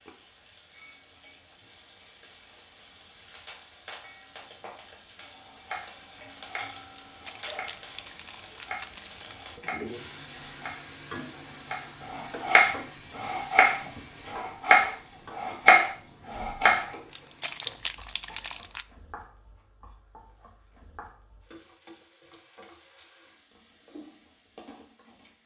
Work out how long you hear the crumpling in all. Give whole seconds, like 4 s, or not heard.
4 s.